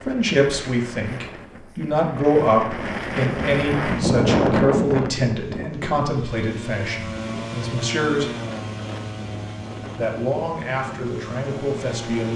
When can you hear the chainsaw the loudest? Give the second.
8 s.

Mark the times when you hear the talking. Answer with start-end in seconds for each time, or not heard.
0.0-8.3, 9.9-12.3.